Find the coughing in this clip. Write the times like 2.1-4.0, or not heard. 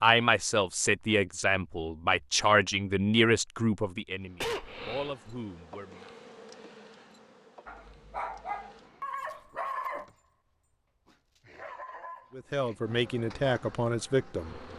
4.4-5.1.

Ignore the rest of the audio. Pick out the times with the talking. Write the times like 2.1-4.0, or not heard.
0.0-6.2, 12.3-14.6.